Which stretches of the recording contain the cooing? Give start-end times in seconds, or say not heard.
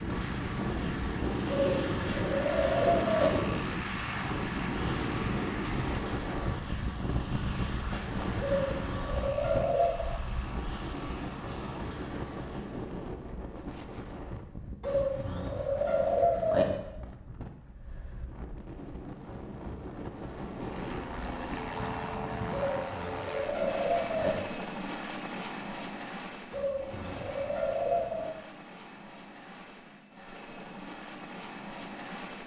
1.4-3.3, 8.4-10.1, 14.8-16.6, 22.5-24.4, 26.5-28.3.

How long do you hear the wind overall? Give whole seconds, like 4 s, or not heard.
23 s.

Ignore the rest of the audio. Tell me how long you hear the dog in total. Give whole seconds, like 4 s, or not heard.
not heard.